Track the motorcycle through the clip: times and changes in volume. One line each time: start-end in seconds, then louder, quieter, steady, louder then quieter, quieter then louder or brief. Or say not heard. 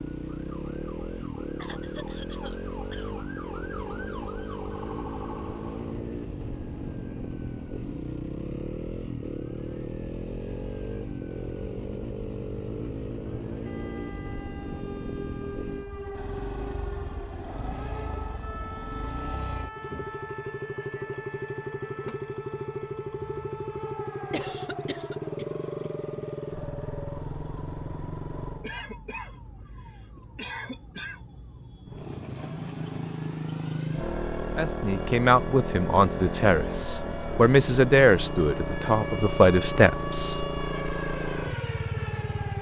0.0-28.8 steady
31.9-42.5 steady.